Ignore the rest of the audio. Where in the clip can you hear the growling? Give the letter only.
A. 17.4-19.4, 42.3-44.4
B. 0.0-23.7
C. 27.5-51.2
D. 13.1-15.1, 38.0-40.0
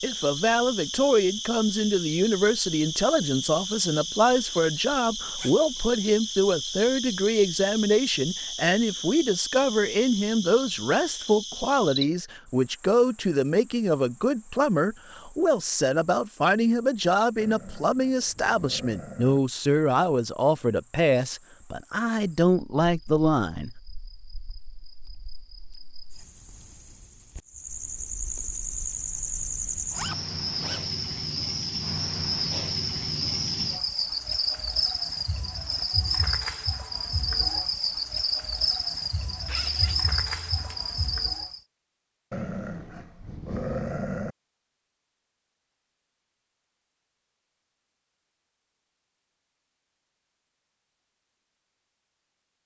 A.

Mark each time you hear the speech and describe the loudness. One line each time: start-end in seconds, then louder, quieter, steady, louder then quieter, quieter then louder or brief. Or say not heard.
0.0-23.7 steady.